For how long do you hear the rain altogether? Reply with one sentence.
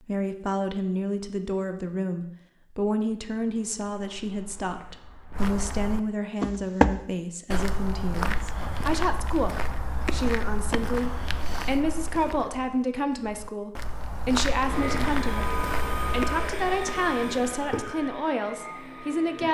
You can't hear the rain here.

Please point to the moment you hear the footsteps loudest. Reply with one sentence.
The loudest moment of the footsteps is at 7 seconds.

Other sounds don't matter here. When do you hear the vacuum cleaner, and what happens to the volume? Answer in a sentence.
You can hear the vacuum cleaner from 14.6 to 19.4 s, getting quieter.